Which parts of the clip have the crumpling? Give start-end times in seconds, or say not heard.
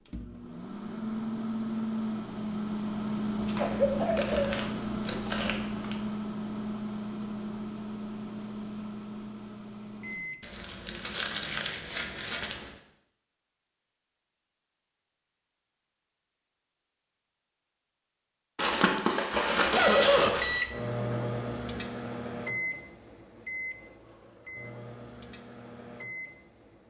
3.4-6.0, 10.4-12.8, 18.6-20.7.